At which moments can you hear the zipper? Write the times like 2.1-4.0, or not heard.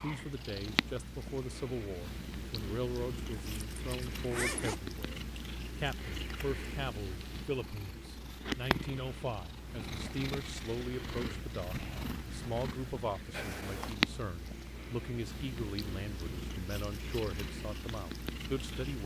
3.3-4.8, 13.3-13.9.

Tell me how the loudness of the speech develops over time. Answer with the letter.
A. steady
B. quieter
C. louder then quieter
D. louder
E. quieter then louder
A.